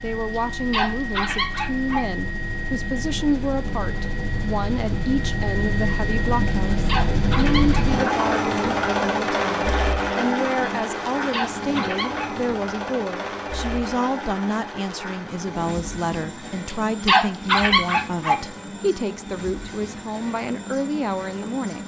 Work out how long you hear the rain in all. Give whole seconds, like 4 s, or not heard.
not heard.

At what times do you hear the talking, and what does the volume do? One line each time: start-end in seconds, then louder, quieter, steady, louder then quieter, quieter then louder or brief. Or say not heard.
0.0-21.8 steady.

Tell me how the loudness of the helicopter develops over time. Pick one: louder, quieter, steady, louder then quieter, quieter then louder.
louder then quieter.